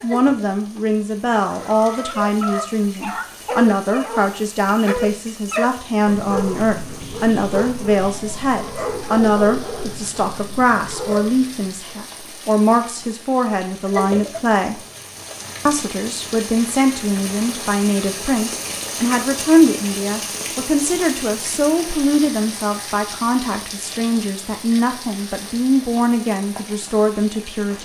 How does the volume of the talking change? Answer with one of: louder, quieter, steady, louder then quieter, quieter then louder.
steady.